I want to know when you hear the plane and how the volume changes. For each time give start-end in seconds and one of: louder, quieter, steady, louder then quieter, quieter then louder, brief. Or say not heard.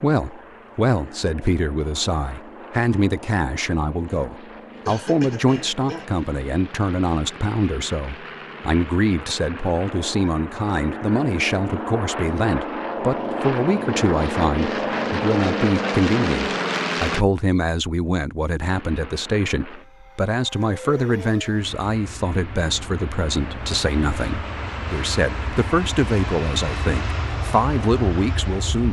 0.0-17.2 louder
18.7-28.8 louder.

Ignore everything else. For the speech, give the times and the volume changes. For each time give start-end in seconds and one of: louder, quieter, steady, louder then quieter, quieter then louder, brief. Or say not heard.
0.0-28.8 steady.